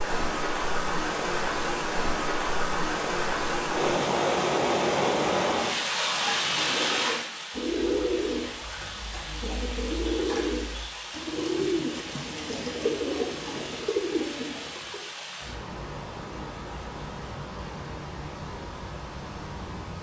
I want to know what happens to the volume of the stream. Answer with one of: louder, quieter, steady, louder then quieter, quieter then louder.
quieter.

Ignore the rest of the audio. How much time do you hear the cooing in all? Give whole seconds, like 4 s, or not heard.
9 s.